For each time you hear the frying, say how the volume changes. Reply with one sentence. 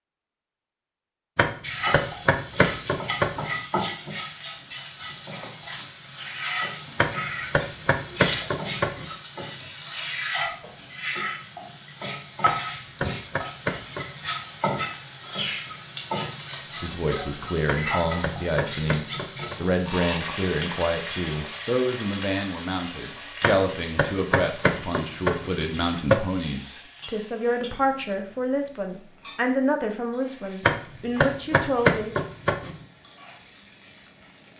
You can hear the frying from 1.6 to 34.5 s, getting quieter.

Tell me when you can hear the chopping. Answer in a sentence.
You can hear the chopping from 1.4 to 3.5 s, from 7.0 to 9.1 s, from 12.4 to 14.1 s, from 17.6 to 19.6 s, from 23.4 to 26.2 s and from 30.6 to 32.8 s.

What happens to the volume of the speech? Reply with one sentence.
The volume of the speech stays about the same.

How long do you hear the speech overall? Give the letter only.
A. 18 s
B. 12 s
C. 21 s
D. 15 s
D.